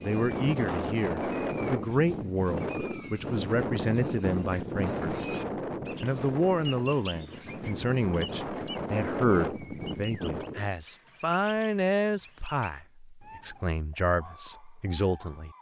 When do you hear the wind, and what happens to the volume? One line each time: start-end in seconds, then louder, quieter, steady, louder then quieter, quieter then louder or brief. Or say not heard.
0.0-10.7 quieter then louder.